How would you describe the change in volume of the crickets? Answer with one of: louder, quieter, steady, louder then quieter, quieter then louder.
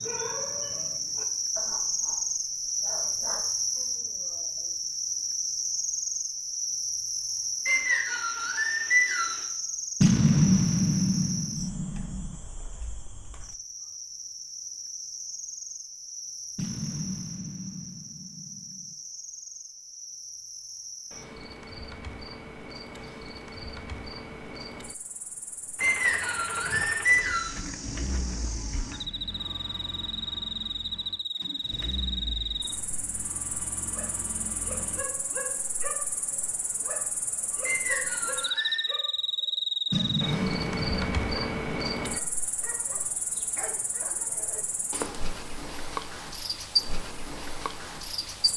quieter then louder.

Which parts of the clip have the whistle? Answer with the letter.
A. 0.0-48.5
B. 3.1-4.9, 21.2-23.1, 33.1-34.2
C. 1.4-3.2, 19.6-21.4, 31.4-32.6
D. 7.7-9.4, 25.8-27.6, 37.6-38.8
D.